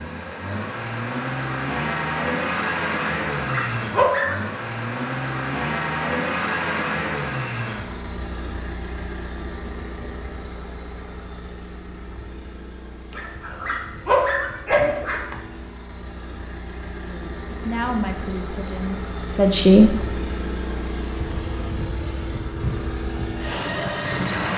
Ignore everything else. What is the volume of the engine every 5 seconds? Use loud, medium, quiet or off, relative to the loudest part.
loud, loud, quiet, medium, loud.